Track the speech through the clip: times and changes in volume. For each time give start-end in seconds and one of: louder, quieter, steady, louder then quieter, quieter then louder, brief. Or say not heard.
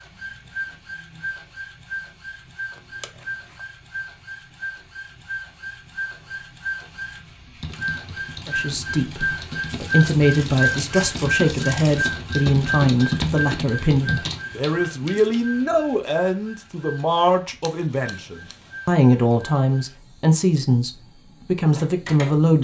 8.4-22.6 steady.